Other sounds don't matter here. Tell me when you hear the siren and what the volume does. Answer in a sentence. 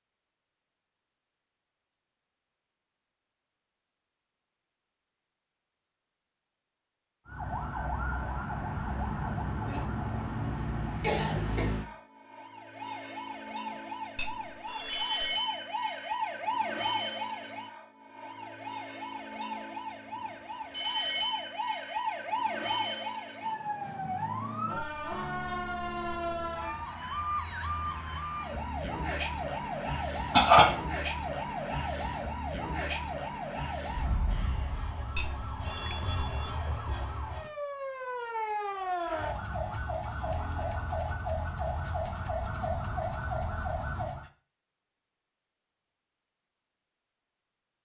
The siren can be heard from 7.2 to 44.3 s, at a steady volume.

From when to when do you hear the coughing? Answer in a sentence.
The coughing can be heard from 9.7 to 11.6 s and from 30.3 to 30.8 s.